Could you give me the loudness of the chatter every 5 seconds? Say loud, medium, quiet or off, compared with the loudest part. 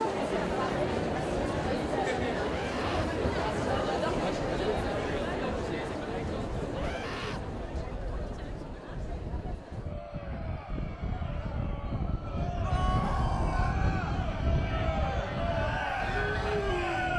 loud, medium, medium, loud.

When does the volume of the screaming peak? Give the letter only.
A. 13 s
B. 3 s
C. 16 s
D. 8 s
A.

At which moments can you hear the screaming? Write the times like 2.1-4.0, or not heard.
2.4-3.1, 6.7-7.4, 12.6-13.8.